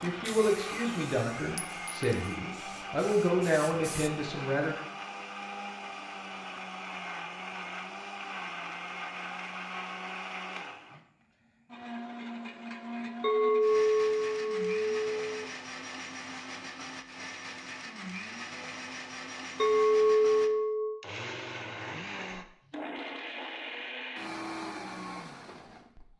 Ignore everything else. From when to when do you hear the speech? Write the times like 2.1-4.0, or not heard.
0.0-4.8.